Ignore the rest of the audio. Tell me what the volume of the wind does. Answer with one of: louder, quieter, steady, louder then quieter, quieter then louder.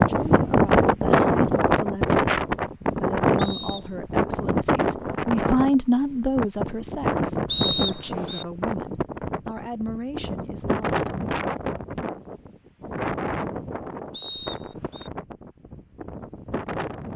quieter.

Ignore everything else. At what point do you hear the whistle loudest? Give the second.
8 s.